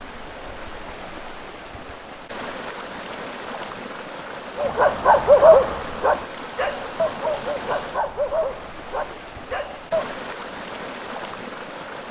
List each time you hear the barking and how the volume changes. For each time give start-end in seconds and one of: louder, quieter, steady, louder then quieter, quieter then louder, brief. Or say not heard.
4.5-10.1 quieter.